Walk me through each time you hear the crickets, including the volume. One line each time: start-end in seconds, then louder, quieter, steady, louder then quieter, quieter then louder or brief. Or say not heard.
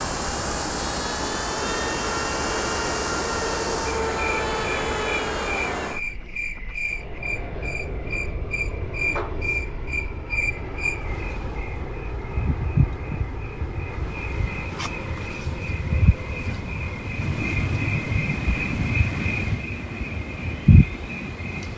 0.0-21.7 louder.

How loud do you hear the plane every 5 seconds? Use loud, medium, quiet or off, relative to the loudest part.
loud, medium, medium, quiet, quiet.